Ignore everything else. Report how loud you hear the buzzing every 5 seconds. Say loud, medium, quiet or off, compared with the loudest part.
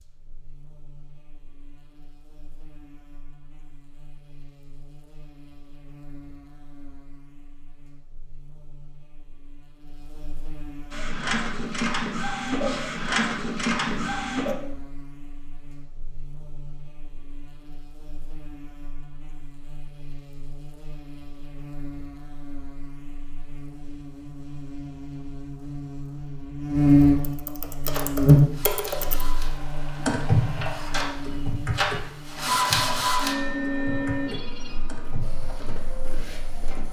quiet, quiet, quiet, quiet, quiet, loud, quiet, off.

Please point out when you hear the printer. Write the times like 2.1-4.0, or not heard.
10.9-14.6, 27.9-36.8.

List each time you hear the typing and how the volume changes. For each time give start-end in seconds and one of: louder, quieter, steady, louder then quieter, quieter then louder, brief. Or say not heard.
27.2-29.2 brief
30.0-35.5 quieter.